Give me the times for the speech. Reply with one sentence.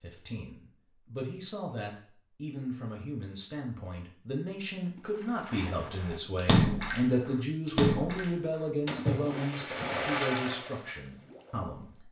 You can hear the speech from 0.0 to 12.0 s.